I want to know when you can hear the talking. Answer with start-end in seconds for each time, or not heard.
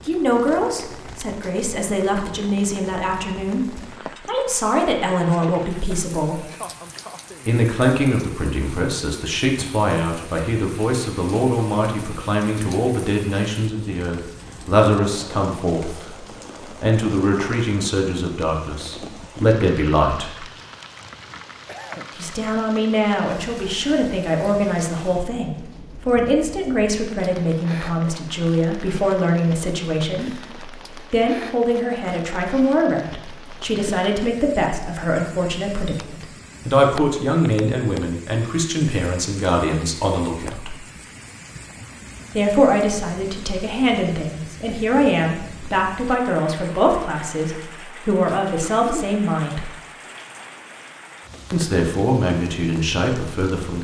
0.1-6.4, 7.5-20.4, 22.1-40.8, 42.4-49.7, 51.5-53.8.